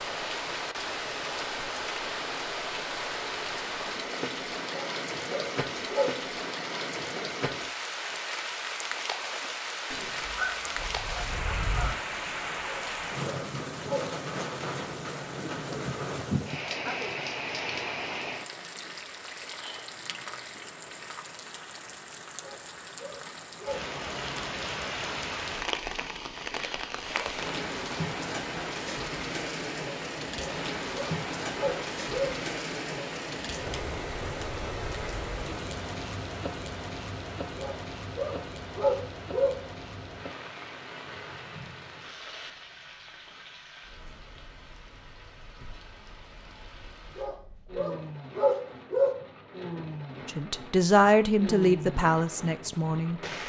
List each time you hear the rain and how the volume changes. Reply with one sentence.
You can hear the rain from 0.0 to 53.4 s, getting quieter.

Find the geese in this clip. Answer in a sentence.
The geese can be heard from 9.9 to 11.9 s.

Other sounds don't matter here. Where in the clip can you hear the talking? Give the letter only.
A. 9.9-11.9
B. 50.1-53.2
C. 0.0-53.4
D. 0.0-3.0
B.